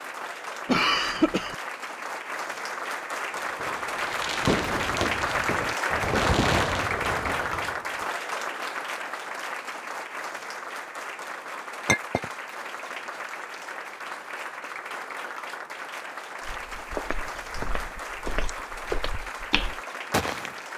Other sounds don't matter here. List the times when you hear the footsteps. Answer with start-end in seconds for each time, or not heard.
16.4-20.6.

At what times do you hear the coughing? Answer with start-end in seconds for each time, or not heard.
0.7-1.6.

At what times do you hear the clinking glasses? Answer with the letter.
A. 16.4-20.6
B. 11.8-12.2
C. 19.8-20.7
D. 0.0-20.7
B.